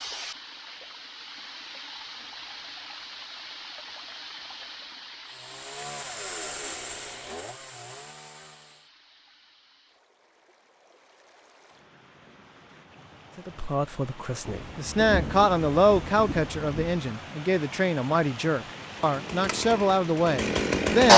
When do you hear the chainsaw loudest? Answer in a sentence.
The volume of the chainsaw peaks at 21 seconds.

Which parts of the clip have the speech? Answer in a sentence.
The speech can be heard from 13.3 to 21.1 s.